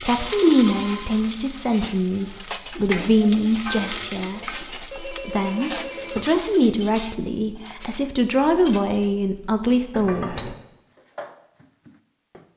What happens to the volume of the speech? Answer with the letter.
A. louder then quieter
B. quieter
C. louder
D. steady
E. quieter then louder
E.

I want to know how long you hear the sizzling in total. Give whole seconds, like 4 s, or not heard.
7 s.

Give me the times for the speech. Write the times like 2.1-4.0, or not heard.
0.0-10.6.